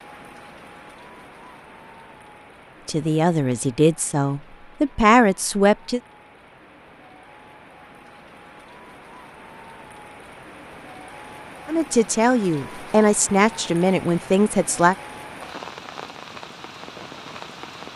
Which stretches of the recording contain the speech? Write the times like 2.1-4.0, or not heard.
2.9-6.0, 11.7-14.9.